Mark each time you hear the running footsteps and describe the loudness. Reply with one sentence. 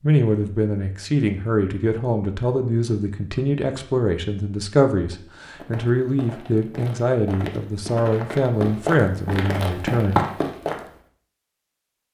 The running footsteps can be heard from 5.5 to 10.9 s, getting louder.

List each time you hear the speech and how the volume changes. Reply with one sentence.
You can hear the speech from 0.0 to 10.2 s, at a steady volume.